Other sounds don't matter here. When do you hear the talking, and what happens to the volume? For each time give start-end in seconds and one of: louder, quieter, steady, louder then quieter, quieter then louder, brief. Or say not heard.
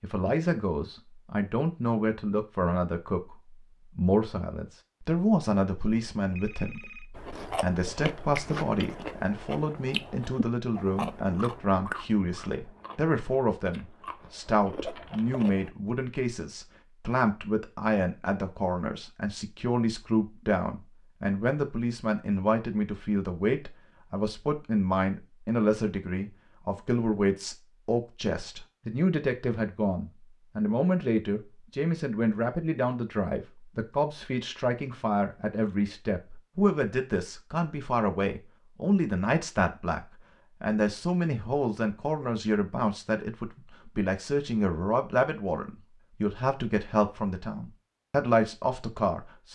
0.0-49.5 steady.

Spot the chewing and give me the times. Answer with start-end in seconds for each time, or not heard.
7.2-15.7.